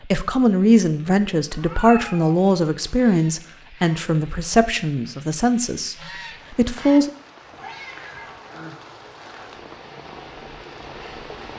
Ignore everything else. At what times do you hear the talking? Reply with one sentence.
You can hear the talking from 0.0 to 7.1 s.